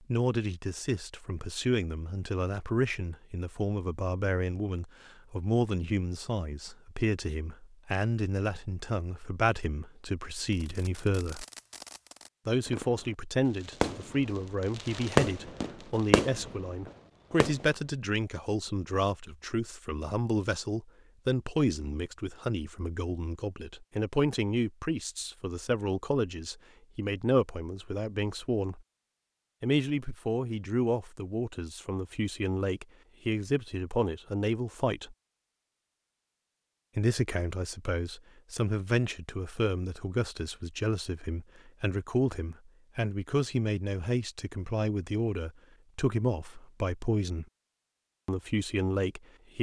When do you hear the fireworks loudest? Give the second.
15 s.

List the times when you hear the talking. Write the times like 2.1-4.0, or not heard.
0.1-11.4, 12.4-28.8, 29.6-35.1, 37.0-47.5, 48.2-49.5.